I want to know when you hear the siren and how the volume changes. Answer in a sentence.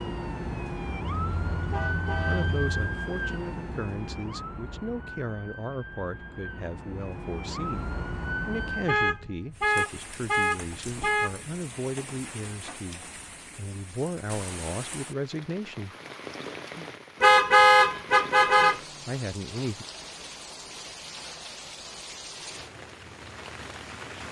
The siren can be heard from 0.0 to 9.2 s, getting quieter then louder.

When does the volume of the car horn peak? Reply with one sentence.
The volume of the car horn peaks at 18 seconds.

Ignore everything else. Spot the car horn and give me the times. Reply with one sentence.
The car horn can be heard from 1.3 to 2.7 s, from 8.8 to 11.4 s and from 17.2 to 18.8 s.